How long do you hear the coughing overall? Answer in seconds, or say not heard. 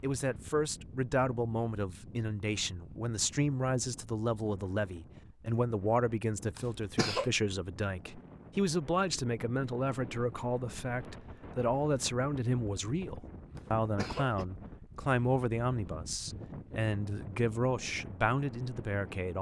2 s.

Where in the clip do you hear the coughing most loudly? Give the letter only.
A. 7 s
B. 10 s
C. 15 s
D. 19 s
A.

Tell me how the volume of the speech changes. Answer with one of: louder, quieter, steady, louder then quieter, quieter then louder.
steady.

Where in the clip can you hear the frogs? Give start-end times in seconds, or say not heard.
not heard.